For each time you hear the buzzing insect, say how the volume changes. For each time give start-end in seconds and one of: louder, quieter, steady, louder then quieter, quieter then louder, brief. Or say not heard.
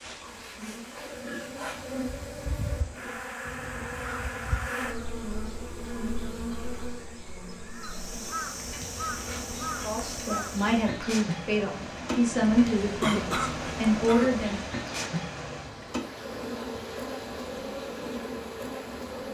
0.0-19.3 steady.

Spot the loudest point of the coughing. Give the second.
13 s.